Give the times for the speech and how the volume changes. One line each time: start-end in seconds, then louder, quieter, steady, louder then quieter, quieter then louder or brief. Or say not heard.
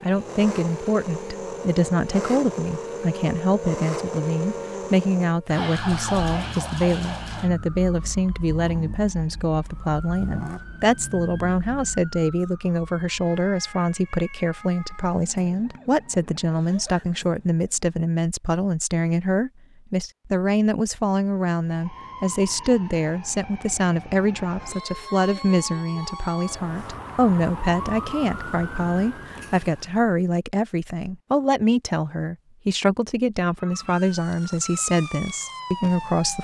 0.0-36.3 steady.